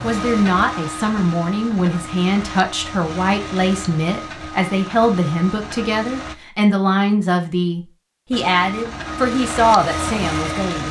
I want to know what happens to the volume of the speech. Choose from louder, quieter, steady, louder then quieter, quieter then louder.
steady.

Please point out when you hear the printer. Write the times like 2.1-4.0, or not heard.
0.0-6.3, 8.3-10.8.